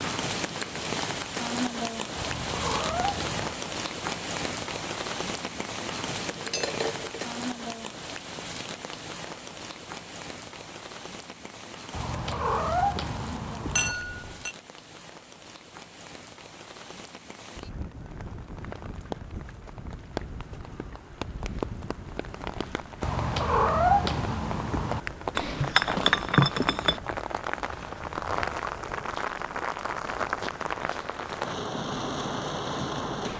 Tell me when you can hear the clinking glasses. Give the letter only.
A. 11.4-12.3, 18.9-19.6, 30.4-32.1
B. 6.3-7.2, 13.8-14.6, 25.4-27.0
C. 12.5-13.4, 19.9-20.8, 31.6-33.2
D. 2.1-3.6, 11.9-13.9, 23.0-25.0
B.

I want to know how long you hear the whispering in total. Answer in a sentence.
You can't hear the whispering here.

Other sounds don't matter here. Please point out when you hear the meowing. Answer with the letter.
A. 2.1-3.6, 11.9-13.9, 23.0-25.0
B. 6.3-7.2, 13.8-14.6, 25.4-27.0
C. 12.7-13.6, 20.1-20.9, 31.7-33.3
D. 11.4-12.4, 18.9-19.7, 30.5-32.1
A.